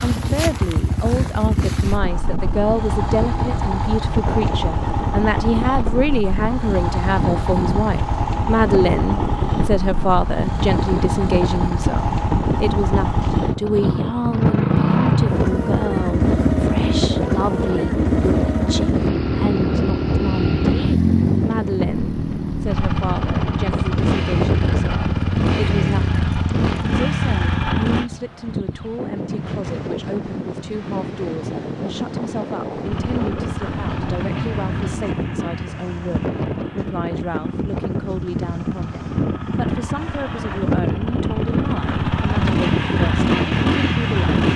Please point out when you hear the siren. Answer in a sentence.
You can't hear the siren here.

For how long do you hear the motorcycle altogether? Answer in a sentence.
The motorcycle can be heard for 40 seconds in total.